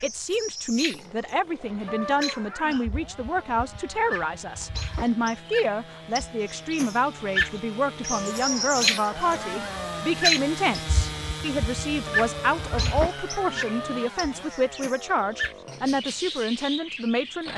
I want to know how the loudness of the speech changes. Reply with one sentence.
The loudness of the speech stays about the same.